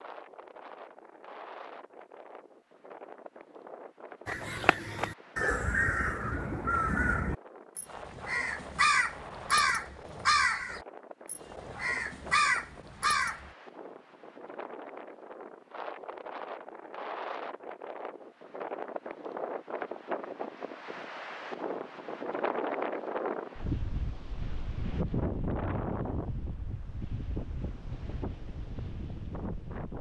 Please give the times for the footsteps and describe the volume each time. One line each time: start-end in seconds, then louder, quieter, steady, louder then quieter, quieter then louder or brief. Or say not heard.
not heard.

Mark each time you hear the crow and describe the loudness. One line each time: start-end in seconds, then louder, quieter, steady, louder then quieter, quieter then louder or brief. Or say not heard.
4.2-13.5 steady.